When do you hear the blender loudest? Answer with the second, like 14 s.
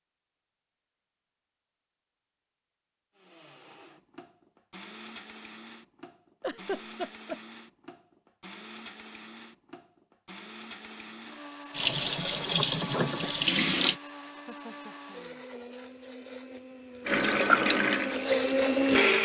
19 s.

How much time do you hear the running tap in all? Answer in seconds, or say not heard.
4 s.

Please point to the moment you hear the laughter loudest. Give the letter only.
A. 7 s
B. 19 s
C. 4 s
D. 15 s
A.